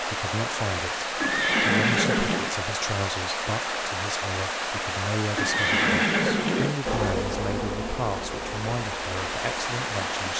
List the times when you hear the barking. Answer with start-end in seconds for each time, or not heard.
not heard.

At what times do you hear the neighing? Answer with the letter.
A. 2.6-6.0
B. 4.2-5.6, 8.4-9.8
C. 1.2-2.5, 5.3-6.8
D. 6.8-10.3
C.